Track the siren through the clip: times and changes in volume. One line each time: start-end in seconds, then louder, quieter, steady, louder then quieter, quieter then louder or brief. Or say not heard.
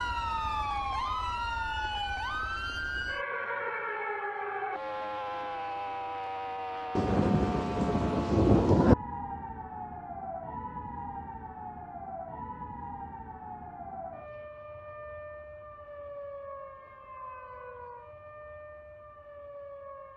0.0-20.1 quieter.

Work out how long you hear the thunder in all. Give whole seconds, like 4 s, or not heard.
2 s.